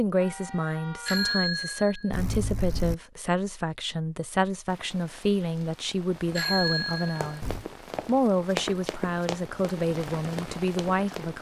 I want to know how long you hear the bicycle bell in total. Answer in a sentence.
You can hear the bicycle bell for 3 seconds altogether.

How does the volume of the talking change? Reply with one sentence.
The loudness of the talking stays about the same.